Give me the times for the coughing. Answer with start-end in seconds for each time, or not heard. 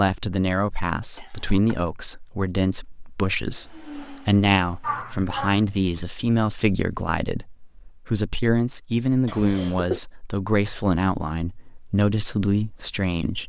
1.1-1.8, 4.8-5.8, 9.2-10.0.